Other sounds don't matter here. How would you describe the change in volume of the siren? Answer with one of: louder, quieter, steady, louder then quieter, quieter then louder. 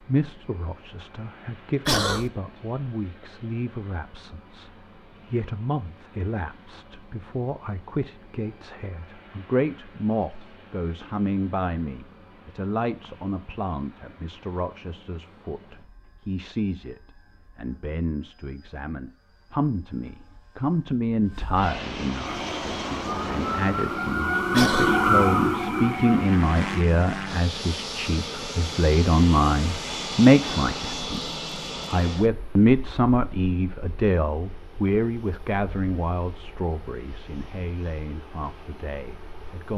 louder then quieter.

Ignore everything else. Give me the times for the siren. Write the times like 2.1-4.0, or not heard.
22.2-26.9.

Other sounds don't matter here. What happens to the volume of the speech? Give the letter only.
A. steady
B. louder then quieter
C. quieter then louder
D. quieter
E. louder
E.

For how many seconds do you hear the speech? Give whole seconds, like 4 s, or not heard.
40 s.